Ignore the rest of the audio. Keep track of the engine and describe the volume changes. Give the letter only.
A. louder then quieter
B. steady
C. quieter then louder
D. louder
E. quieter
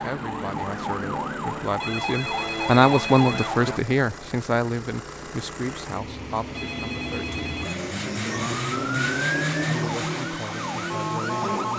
D.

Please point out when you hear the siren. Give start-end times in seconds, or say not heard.
0.0-3.8, 8.3-11.7.